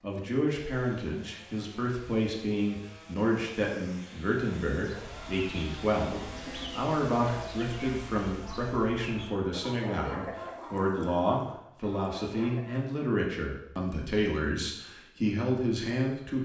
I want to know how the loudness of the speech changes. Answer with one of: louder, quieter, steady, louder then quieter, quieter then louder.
steady.